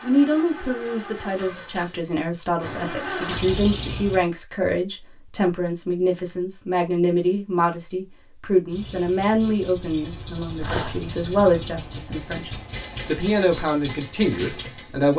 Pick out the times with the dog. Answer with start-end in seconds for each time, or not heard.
10.6-11.1.